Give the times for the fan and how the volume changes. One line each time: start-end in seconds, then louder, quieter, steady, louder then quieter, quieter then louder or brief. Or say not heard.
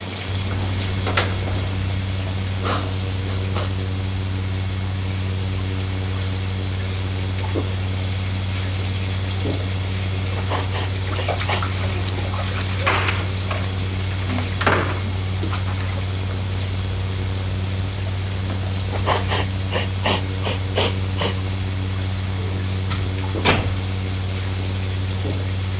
0.0-25.7 steady.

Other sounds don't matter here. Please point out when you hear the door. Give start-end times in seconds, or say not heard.
0.4-1.8, 12.7-15.1, 22.4-23.9.